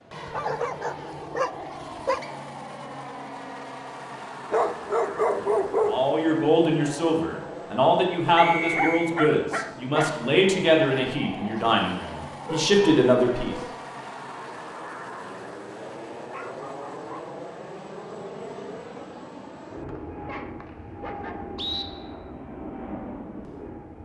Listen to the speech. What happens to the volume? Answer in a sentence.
The volume of the speech stays about the same.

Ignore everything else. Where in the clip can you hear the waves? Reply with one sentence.
You can't hear the waves here.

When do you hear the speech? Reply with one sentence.
You can hear the speech from 5.8 to 13.6 s.